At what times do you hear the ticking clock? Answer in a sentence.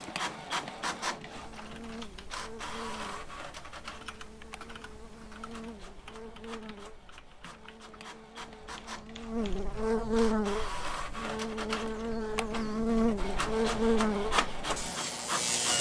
You can't hear the ticking clock here.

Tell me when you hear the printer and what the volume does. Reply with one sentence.
You can hear the printer from 0.0 to 15.7 s, getting quieter then louder.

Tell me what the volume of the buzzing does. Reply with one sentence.
The volume of the buzzing goes up.